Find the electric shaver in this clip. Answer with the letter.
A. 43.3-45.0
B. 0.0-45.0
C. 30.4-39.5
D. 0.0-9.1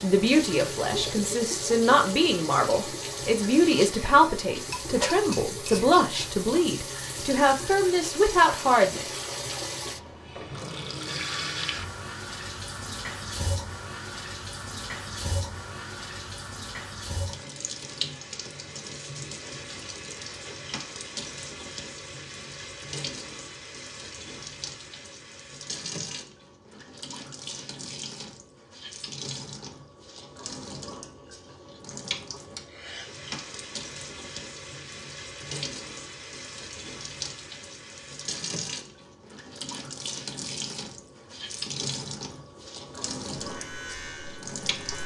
A.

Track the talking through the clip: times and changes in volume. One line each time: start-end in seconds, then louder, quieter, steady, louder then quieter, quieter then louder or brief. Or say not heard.
0.0-9.1 steady.